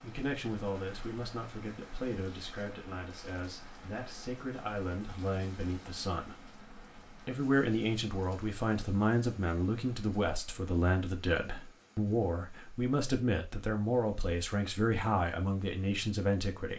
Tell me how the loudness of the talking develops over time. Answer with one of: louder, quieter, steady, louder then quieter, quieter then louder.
louder.